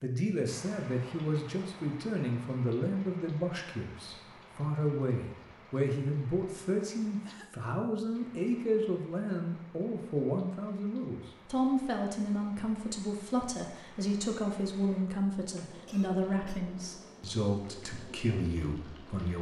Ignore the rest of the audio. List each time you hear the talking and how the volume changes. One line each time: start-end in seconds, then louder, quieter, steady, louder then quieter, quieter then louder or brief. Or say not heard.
0.0-19.3 steady.